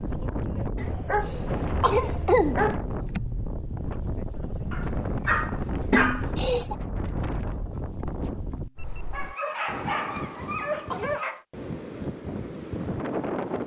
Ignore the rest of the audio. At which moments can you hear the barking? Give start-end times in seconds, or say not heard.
0.8-2.8, 4.7-6.2, 9.1-11.4.